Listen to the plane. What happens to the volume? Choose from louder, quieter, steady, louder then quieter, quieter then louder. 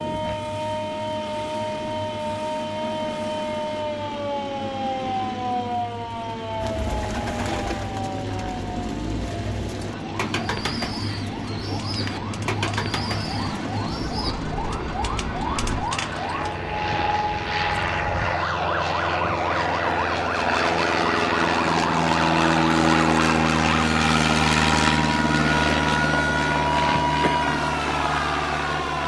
louder.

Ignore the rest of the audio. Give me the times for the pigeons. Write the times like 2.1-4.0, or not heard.
6.6-14.3.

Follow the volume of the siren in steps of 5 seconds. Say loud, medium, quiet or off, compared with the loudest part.
loud, medium, medium, loud, loud, loud.